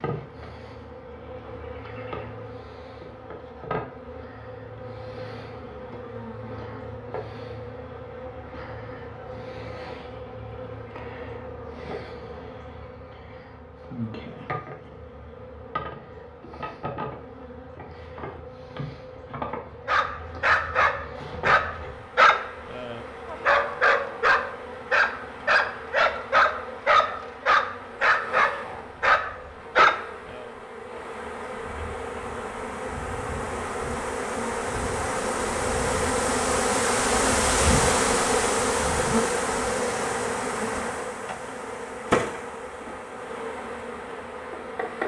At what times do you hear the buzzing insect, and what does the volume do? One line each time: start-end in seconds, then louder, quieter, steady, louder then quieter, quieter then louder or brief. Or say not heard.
0.0-45.0 louder.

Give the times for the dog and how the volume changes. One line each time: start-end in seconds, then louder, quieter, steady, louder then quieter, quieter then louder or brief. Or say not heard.
19.9-30.5 steady.